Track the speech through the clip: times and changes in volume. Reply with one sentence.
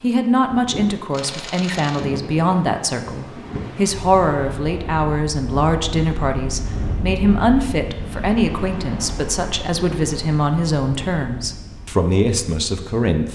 The speech can be heard from 0.0 to 13.3 s, at a steady volume.